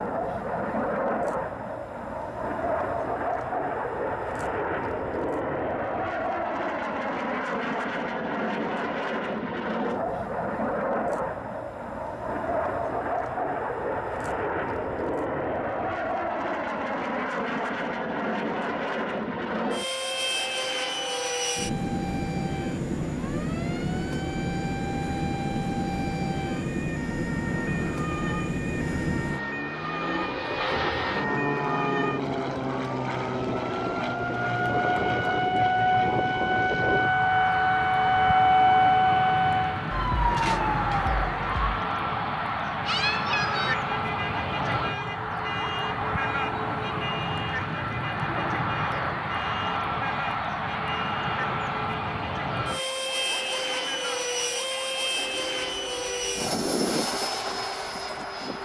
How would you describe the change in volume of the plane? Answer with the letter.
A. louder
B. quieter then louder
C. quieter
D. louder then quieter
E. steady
E.